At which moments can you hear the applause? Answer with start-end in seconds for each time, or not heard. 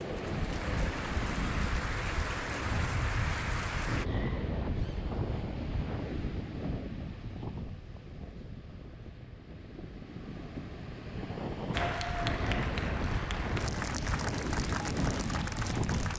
0.0-4.0, 11.7-16.1.